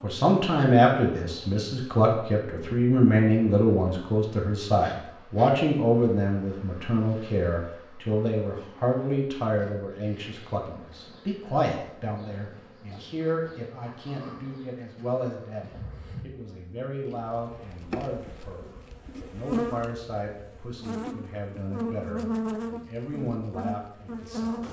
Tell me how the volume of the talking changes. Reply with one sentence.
The volume of the talking goes down.